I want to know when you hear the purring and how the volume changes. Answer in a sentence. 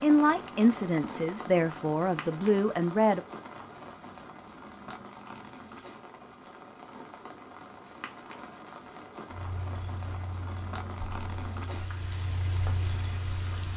The purring can be heard from 9.3 to 13.7 s, getting louder.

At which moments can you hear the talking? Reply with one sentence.
You can hear the talking from 0.0 to 3.2 s.